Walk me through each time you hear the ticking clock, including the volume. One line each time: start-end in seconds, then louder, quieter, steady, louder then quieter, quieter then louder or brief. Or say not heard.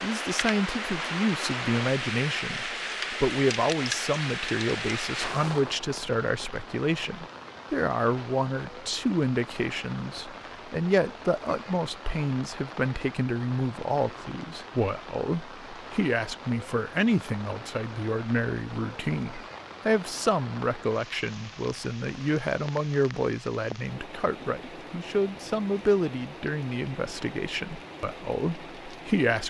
not heard.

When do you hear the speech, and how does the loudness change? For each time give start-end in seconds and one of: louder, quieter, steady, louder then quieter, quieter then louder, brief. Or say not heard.
0.0-29.4 steady.